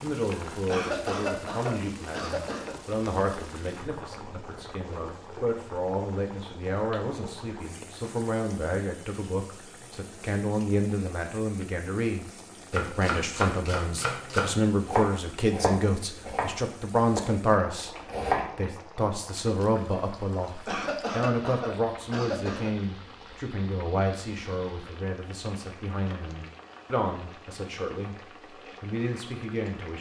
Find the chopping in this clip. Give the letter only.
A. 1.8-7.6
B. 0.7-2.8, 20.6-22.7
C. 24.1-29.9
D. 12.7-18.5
D.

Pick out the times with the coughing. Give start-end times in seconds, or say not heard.
0.7-2.8, 20.6-22.7.